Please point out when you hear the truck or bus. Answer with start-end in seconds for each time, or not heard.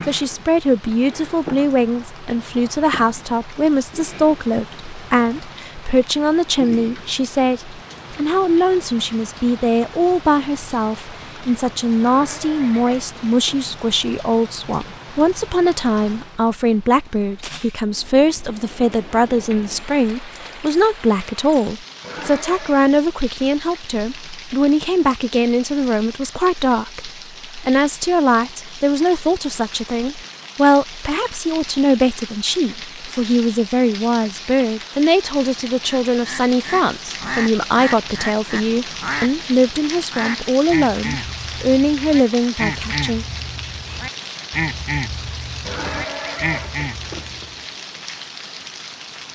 not heard.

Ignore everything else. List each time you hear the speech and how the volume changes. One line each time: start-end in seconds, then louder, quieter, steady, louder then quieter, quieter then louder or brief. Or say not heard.
0.1-43.2 steady.